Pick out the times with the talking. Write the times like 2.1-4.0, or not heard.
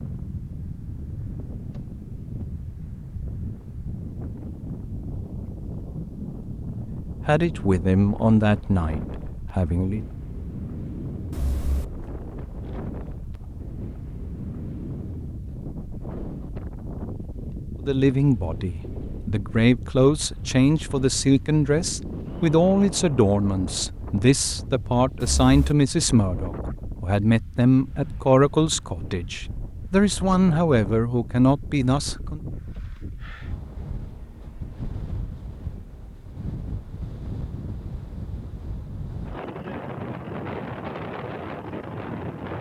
7.0-10.0, 17.8-32.4.